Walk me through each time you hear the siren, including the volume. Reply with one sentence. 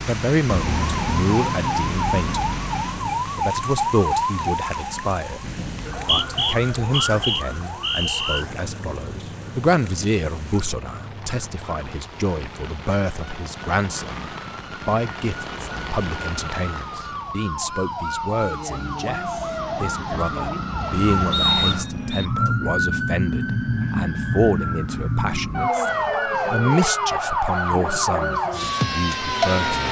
The siren can be heard from 0.0 to 29.8 s, getting quieter then louder.